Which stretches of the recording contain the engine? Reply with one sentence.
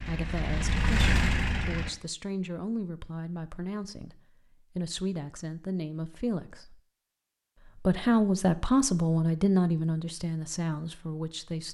The engine can be heard from 0.0 to 1.9 s.